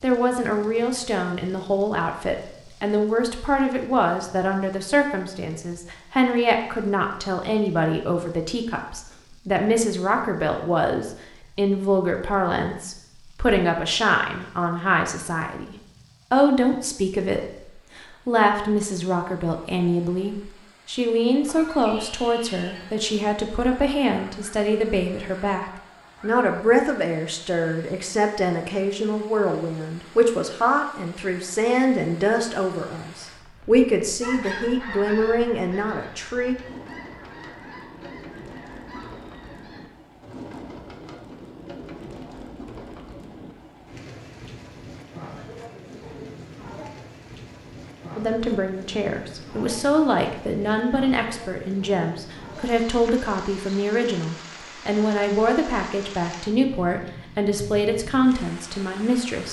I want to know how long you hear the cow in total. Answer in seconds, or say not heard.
not heard.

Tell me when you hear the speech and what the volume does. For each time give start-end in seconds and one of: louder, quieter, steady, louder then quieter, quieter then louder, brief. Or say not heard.
0.0-36.5 steady
48.1-59.4 steady.